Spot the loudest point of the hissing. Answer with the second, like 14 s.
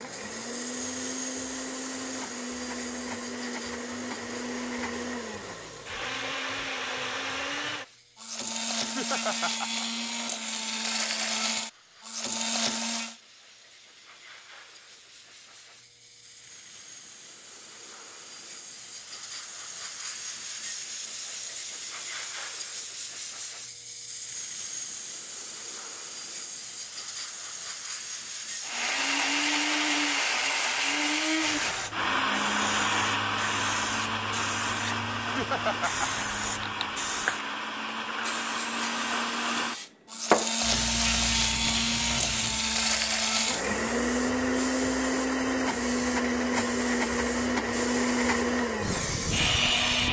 41 s.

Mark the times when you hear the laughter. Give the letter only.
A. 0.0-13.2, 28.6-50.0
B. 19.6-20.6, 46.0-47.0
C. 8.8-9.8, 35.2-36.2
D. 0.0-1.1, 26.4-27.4
C.